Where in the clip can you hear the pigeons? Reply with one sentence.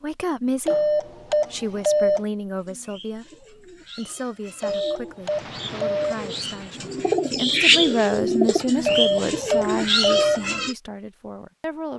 The pigeons can be heard from 2.5 to 10.8 s.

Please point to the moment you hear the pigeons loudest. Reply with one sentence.
The volume of the pigeons peaks at 8 seconds.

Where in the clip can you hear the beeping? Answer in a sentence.
You can hear the beeping from 0.7 to 2.2 s, from 4.6 to 6.0 s and from 8.8 to 10.4 s.